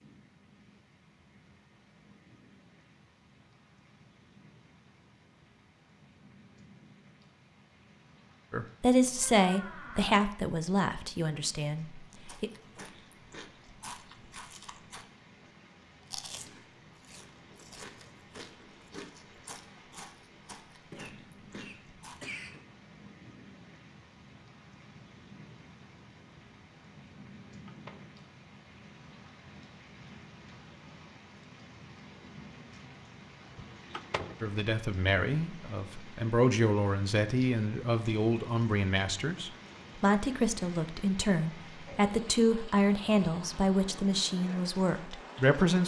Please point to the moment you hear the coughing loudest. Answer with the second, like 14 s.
22 s.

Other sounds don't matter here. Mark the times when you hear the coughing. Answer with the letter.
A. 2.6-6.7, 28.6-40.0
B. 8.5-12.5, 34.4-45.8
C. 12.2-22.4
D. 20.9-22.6
D.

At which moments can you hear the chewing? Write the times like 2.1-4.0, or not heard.
12.2-22.4.